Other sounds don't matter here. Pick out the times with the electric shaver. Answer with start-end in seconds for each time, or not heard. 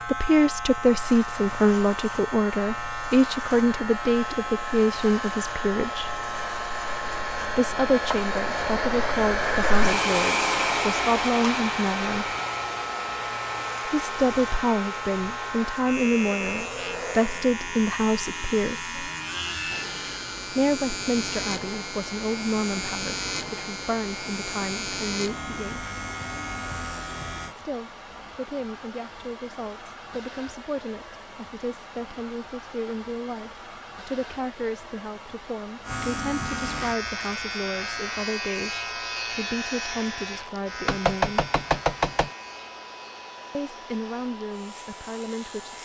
0.0-27.6, 35.8-45.8.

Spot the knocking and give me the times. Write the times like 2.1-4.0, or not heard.
40.9-42.3.